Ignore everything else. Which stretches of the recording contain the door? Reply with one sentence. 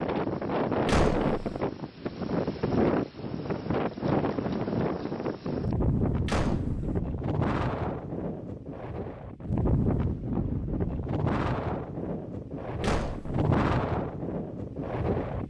You can hear the door from 0.8 to 1.4 s, from 6.2 to 7.0 s and from 12.8 to 13.4 s.